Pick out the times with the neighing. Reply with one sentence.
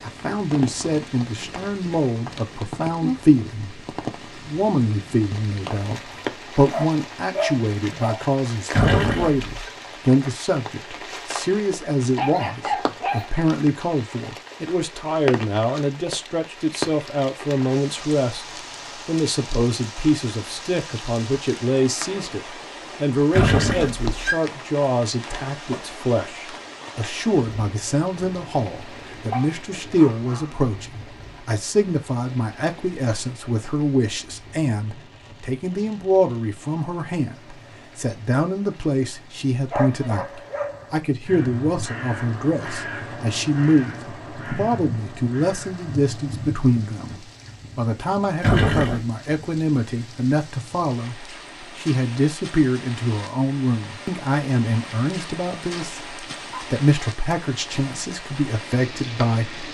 The neighing can be heard from 8.7 to 9.4 s, from 23.3 to 24.4 s and from 48.4 to 49.0 s.